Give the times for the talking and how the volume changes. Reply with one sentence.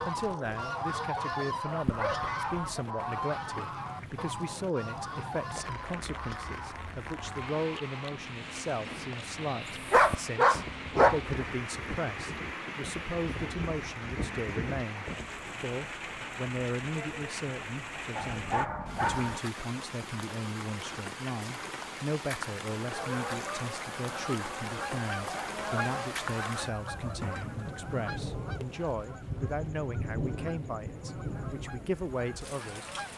The talking can be heard from 0.1 to 32.9 s, at a steady volume.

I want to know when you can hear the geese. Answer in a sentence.
The geese can be heard from 0.0 to 8.2 s, from 9.7 to 15.4 s and from 22.8 to 33.1 s.